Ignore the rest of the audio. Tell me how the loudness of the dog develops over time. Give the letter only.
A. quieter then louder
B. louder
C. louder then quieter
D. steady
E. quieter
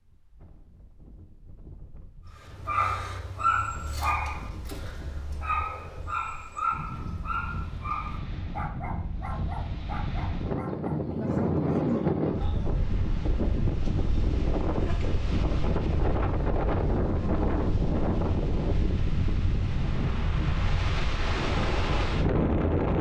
E.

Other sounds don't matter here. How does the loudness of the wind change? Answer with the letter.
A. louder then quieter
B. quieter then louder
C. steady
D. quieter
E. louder
E.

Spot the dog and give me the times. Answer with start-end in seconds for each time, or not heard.
2.4-12.8.